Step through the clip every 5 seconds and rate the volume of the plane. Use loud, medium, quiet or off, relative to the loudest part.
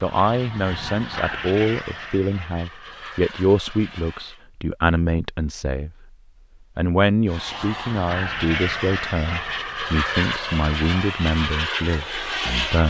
medium, loud, loud.